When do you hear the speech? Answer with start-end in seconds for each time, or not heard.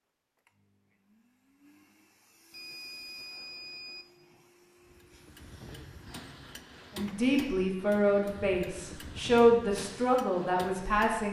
7.0-11.2.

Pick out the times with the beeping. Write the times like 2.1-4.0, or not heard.
2.5-4.0.